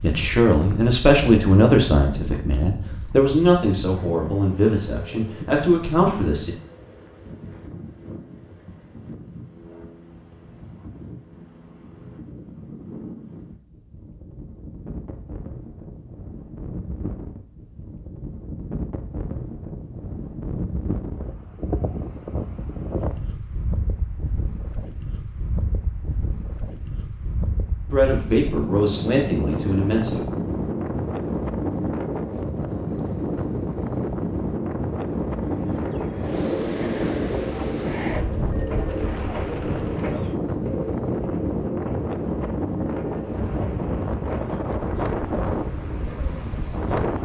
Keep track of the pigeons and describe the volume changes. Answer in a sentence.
The volume of the pigeons goes down.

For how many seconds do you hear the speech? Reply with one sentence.
You can hear the speech for 9 seconds altogether.